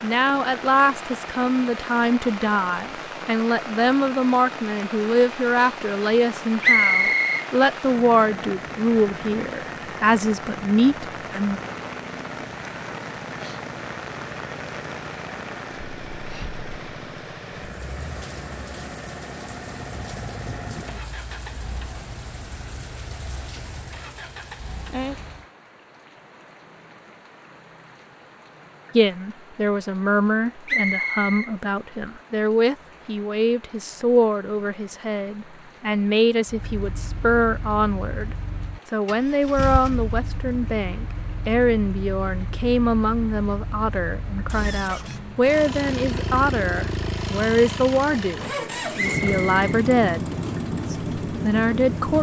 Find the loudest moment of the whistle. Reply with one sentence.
The loudest moment of the whistle is at 7 seconds.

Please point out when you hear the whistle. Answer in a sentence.
The whistle can be heard from 6.6 to 7.5 s, from 30.6 to 31.5 s and from 49.0 to 49.5 s.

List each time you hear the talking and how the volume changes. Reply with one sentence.
The talking can be heard from 0.0 to 11.6 s, at a steady volume; and from 28.9 to 52.1 s, at a steady volume.